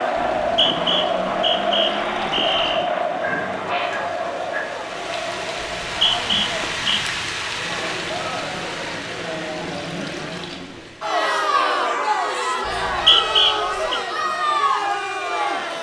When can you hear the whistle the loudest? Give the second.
13 s.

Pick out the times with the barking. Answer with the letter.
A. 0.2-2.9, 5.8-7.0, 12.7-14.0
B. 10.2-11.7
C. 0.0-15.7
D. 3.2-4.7
D.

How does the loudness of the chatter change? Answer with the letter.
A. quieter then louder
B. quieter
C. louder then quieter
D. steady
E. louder
A.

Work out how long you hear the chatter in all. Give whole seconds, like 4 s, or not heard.
16 s.